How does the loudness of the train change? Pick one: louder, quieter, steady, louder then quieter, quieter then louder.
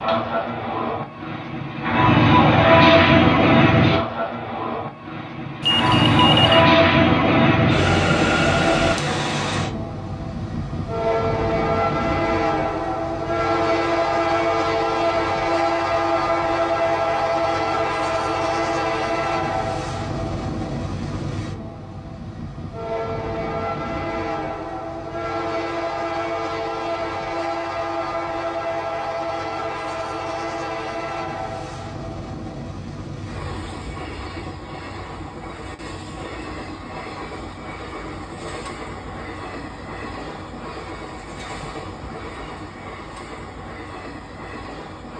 quieter.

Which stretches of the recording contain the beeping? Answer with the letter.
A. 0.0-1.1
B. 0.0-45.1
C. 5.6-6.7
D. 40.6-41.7
C.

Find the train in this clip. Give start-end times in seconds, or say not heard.
0.0-45.1.